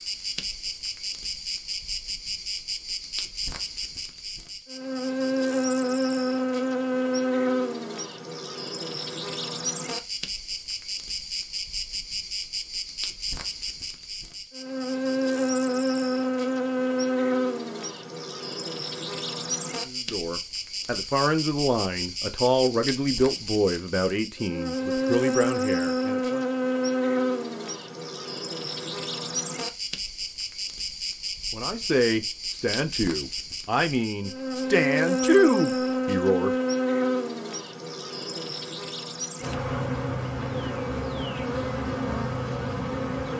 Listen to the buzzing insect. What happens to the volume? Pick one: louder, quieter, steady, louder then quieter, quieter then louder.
steady.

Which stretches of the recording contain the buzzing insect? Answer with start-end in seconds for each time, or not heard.
0.0-43.3.